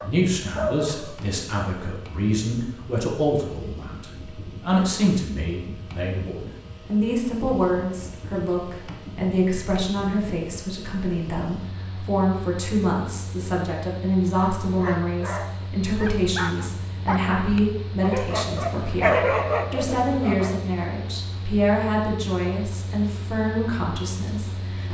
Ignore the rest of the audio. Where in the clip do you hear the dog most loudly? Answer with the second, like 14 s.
19 s.